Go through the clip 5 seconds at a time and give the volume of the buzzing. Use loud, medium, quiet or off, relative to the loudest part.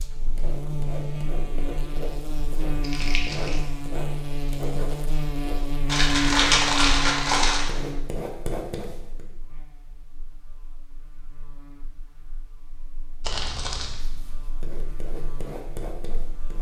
loud, loud, quiet, quiet.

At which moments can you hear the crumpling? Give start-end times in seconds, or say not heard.
2.8-3.6, 5.8-7.7, 13.2-14.0.